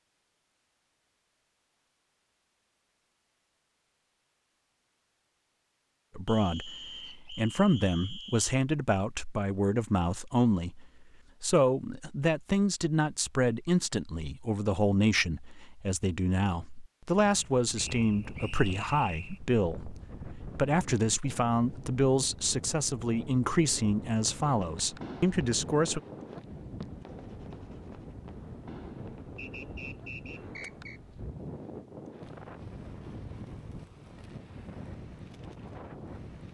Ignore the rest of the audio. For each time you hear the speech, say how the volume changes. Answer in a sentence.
The speech can be heard from 6.2 to 26.0 s, at a steady volume.